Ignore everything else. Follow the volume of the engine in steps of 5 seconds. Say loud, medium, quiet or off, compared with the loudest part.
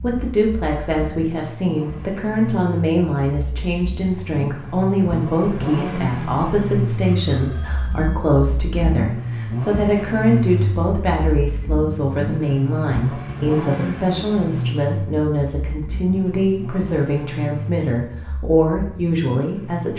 medium, loud, loud, medium.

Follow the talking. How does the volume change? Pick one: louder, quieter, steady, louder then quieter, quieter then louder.
steady.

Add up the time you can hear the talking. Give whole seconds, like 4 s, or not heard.
20 s.